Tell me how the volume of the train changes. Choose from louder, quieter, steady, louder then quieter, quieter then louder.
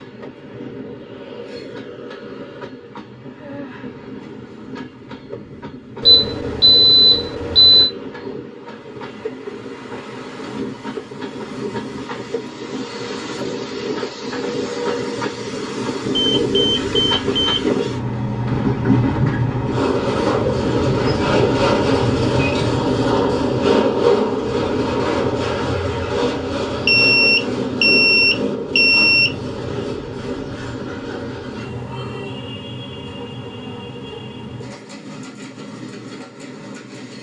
louder then quieter.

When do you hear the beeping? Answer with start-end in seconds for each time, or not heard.
6.0-7.9, 16.1-17.7, 26.9-29.3.